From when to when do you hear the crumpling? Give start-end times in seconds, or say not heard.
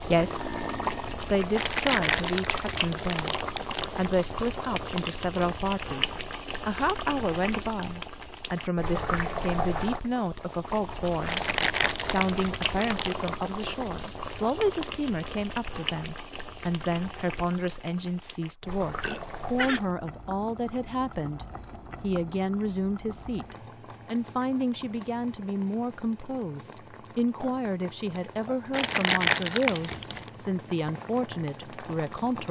1.6-4.0, 11.2-13.4, 28.7-30.3.